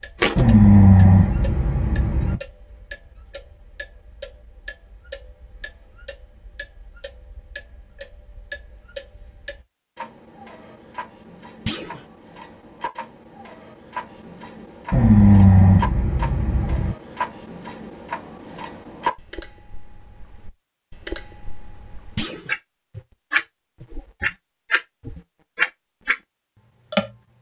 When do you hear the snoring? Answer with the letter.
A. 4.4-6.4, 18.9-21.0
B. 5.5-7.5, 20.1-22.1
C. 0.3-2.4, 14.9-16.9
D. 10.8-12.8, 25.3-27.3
C.